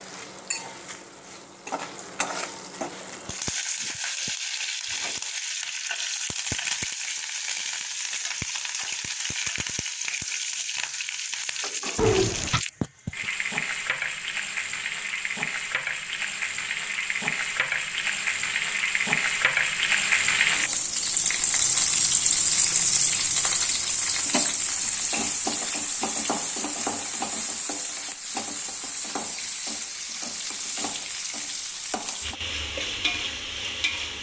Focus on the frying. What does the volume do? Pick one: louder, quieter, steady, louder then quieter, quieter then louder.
louder then quieter.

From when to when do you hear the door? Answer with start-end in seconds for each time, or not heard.
11.9-12.7.